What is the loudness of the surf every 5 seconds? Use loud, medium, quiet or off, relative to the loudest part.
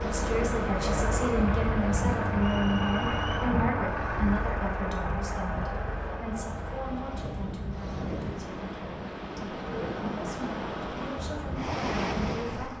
medium, medium, loud.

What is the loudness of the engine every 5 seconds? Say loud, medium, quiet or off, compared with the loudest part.
loud, medium, medium.